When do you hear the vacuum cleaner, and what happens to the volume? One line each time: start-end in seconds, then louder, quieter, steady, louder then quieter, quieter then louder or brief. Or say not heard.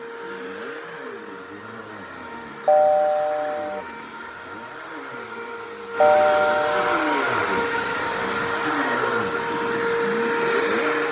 0.0-11.0 louder.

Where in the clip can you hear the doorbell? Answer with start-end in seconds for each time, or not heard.
2.6-3.8, 6.0-7.2.